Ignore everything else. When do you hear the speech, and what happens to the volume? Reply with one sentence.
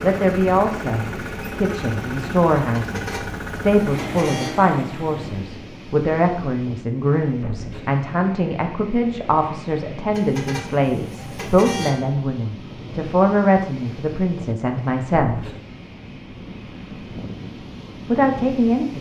The speech can be heard from 0.0 to 15.4 s, at a steady volume; and briefly from 18.1 to 18.9 s.